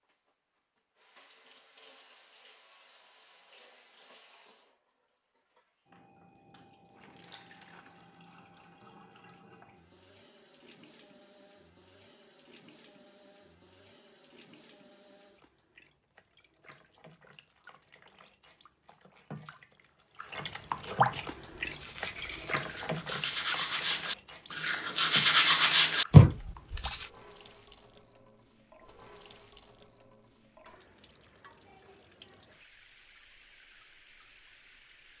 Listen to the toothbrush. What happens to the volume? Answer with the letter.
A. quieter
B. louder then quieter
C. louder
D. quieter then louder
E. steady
C.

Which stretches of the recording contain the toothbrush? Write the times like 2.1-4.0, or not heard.
21.5-27.1.